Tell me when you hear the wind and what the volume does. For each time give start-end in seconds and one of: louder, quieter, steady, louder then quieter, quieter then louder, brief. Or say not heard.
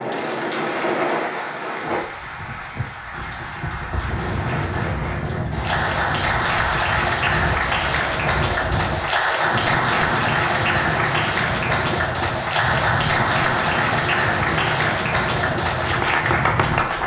0.0-17.0 steady.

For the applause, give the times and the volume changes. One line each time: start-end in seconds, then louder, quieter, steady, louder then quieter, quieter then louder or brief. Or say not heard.
0.0-17.0 louder.